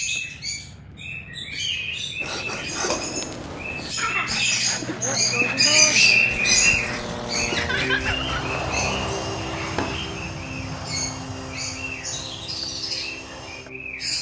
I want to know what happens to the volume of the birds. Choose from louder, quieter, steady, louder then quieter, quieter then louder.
louder then quieter.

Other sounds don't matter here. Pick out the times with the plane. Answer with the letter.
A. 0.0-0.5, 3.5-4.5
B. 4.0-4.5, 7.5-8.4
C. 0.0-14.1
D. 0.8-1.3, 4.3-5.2
C.